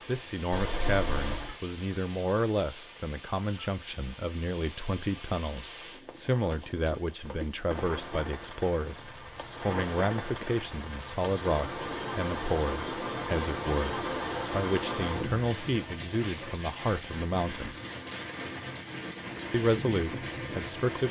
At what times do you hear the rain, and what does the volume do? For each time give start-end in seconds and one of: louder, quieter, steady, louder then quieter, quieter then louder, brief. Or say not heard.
0.0-21.0 louder.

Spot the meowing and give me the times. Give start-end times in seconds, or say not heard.
0.5-1.6.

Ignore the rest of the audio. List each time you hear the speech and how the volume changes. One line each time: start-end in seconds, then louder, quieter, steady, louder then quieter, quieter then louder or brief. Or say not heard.
0.1-17.8 steady
19.5-21.0 brief.